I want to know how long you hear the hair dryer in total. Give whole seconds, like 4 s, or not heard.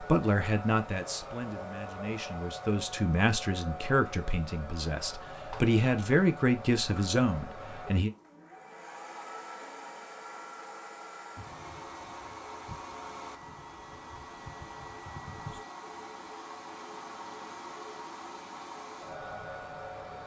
20 s.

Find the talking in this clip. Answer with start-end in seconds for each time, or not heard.
0.0-8.1.